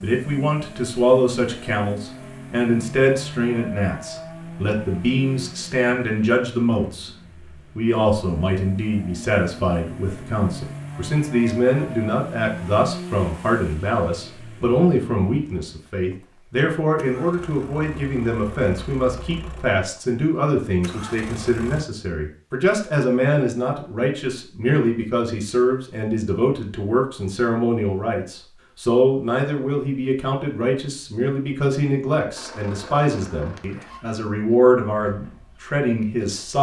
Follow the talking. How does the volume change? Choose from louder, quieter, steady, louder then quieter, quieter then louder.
steady.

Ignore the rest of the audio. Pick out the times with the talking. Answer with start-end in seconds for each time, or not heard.
0.0-7.1, 7.8-36.5.